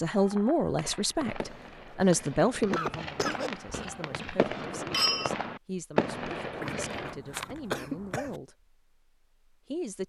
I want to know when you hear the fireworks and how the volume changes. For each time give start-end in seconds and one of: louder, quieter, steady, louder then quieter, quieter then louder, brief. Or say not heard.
0.1-7.2 louder.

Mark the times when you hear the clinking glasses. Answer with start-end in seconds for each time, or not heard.
3.7-5.3.